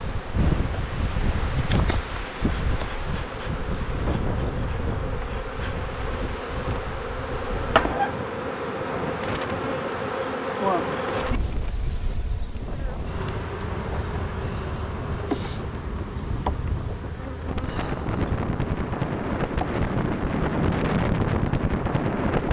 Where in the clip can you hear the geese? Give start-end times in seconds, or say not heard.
not heard.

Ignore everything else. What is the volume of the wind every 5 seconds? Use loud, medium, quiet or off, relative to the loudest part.
medium, medium, quiet, medium, loud.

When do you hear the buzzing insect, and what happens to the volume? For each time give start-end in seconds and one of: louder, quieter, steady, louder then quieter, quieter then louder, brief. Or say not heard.
0.0-22.4 louder then quieter.